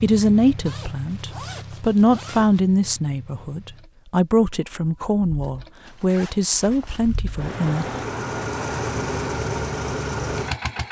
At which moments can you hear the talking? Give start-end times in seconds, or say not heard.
0.0-7.8.